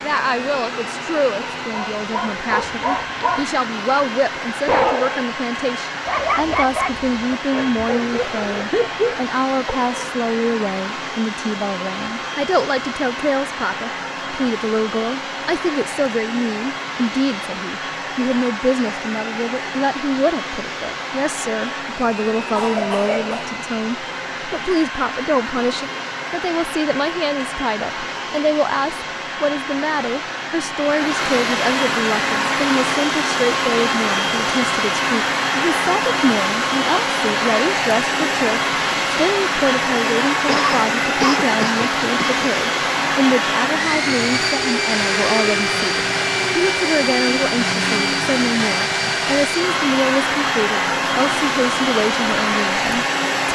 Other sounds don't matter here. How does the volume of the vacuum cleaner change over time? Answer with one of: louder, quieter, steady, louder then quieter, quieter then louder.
louder.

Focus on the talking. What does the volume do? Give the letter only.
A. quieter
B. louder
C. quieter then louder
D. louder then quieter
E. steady
E.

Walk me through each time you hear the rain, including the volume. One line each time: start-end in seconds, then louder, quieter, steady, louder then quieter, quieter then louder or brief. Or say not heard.
not heard.